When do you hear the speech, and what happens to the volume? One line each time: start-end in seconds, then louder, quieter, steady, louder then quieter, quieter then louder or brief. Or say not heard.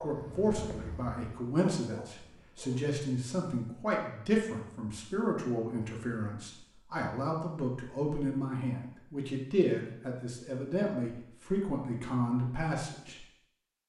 0.0-13.2 steady.